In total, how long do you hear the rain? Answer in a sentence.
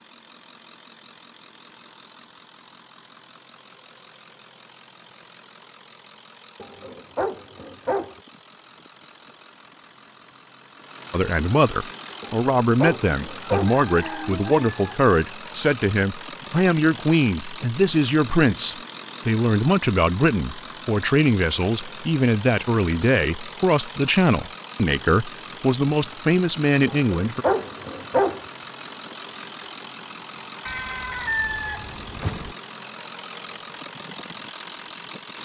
You can't hear the rain here.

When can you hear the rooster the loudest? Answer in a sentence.
The volume of the rooster peaks at 31 seconds.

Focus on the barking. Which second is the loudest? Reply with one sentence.
The volume of the barking peaks at 28 seconds.